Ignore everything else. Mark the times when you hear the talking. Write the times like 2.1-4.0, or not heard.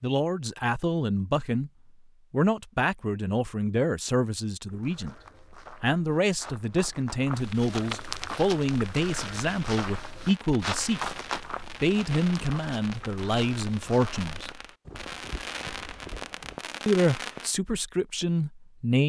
0.0-1.7, 2.3-5.2, 5.8-11.0, 11.8-14.5, 16.9-19.0.